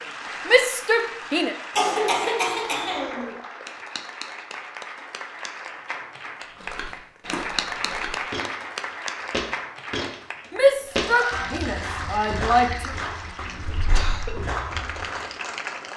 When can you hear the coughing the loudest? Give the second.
2 s.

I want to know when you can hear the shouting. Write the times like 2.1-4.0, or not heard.
0.5-1.6, 10.5-12.9.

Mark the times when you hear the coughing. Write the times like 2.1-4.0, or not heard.
1.8-3.4, 13.6-14.4.